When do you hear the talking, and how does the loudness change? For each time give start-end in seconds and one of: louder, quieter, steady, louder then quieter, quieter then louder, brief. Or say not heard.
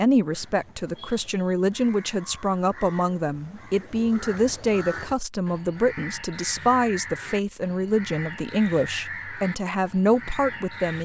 0.0-10.9 steady.